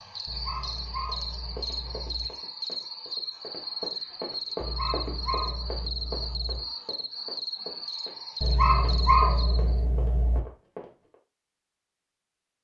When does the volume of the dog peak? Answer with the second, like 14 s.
9 s.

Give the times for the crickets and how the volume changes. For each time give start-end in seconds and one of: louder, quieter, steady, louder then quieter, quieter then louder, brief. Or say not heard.
0.0-9.8 steady.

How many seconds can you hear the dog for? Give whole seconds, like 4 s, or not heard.
6 s.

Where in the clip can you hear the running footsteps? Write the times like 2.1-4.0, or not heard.
1.4-11.2.